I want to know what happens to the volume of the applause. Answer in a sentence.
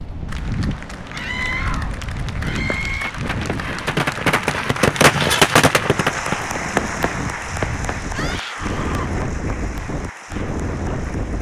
The loudness of the applause goes up, then down.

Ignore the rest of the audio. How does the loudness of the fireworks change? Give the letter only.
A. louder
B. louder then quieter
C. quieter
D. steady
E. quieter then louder
B.